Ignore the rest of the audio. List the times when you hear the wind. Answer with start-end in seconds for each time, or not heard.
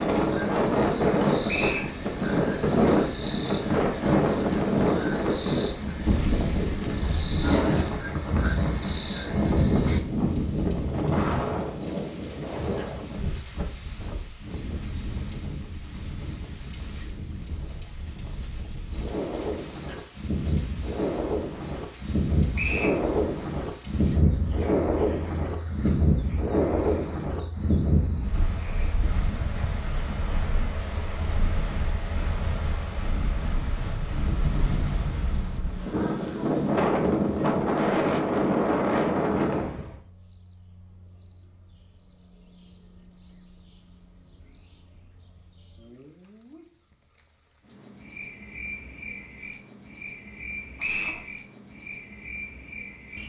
0.0-40.0.